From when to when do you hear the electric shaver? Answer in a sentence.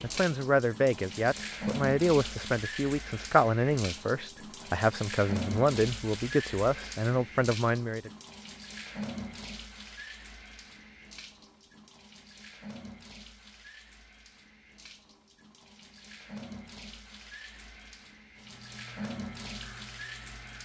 The electric shaver can be heard from 18.4 to 20.6 s.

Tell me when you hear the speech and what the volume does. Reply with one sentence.
You can hear the speech from 0.0 to 8.1 s, at a steady volume.